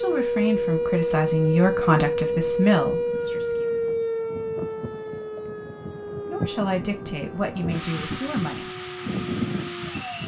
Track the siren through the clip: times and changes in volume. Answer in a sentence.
The siren can be heard from 0.0 to 10.2 s, getting quieter.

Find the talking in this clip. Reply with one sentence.
The talking can be heard from 0.0 to 3.7 s and from 6.2 to 8.7 s.